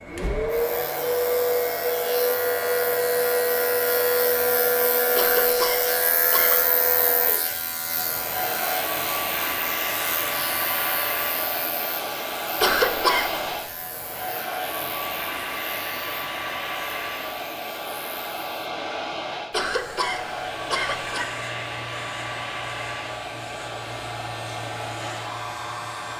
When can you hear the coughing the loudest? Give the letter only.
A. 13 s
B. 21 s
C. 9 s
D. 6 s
A.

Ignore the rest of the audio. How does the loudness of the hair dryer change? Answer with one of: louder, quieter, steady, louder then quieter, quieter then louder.
quieter.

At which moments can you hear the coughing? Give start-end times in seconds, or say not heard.
5.2-6.7, 12.6-13.5, 19.5-21.3.